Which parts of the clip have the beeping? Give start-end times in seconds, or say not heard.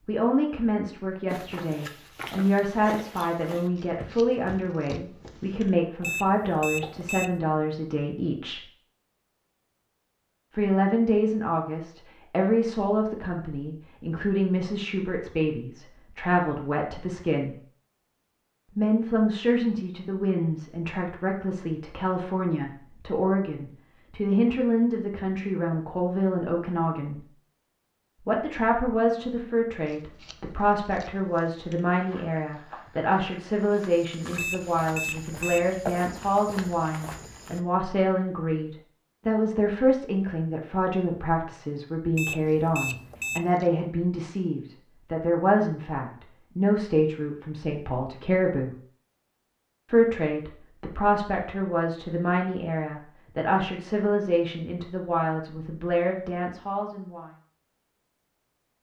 6.0-7.4, 34.4-35.8, 42.1-43.5.